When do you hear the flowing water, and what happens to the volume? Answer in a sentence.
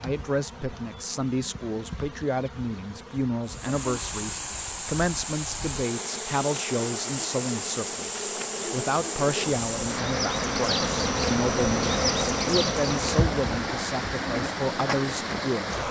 The flowing water can be heard from 3.5 to 15.8 s, at a steady volume.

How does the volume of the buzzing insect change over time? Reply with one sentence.
The loudness of the buzzing insect goes up.